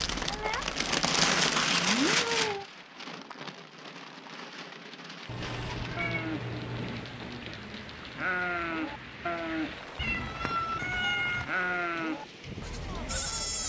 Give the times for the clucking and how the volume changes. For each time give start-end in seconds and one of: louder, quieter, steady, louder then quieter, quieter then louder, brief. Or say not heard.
not heard.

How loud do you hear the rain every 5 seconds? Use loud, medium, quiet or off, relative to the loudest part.
loud, quiet, quiet.